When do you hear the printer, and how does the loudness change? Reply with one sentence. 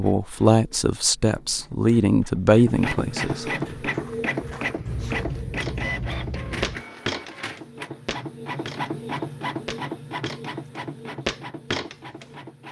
The printer can be heard from 0.0 to 12.6 s, getting louder then quieter.